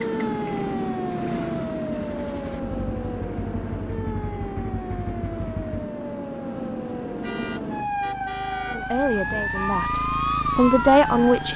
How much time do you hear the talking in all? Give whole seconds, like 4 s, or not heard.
3 s.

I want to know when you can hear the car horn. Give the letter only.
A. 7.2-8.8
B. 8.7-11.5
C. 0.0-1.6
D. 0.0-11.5
A.